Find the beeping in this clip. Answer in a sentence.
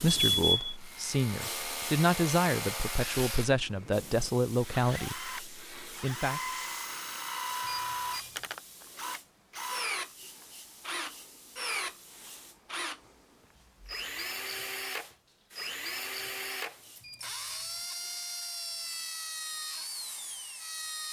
The beeping can be heard from 0.3 to 0.8 s, from 7.7 to 8.4 s and from 17.0 to 17.8 s.